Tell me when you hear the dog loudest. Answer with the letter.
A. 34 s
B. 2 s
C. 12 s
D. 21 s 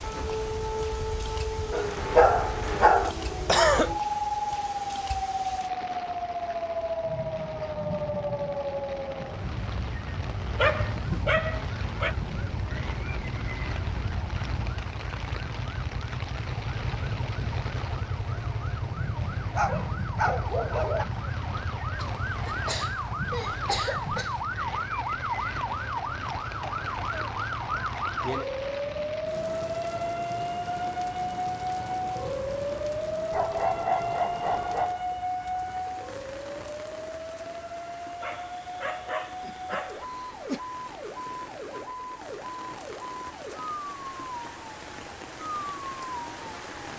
B.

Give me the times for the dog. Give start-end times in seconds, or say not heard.
1.7-3.1, 10.6-12.2, 19.5-21.1, 33.3-35.0, 38.2-40.0.